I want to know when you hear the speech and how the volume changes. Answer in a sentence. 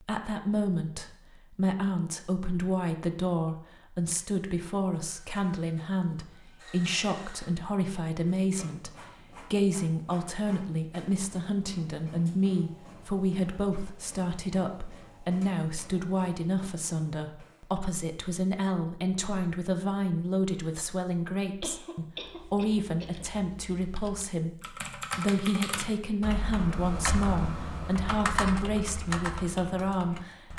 You can hear the speech from 0.0 to 8.9 s, at a steady volume; and from 9.5 to 30.5 s, at a steady volume.